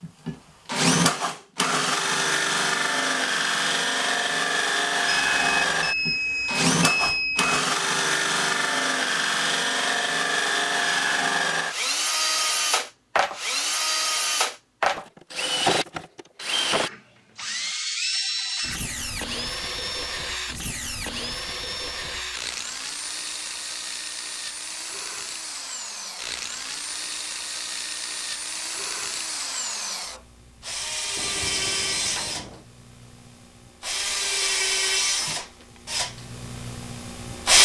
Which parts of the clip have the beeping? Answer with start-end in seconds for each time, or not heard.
5.0-7.5, 31.1-32.6.